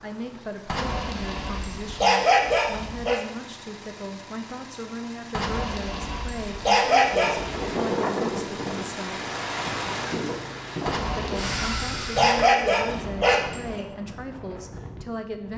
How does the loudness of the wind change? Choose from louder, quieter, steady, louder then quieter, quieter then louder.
quieter.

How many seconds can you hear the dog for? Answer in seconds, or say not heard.
8 s.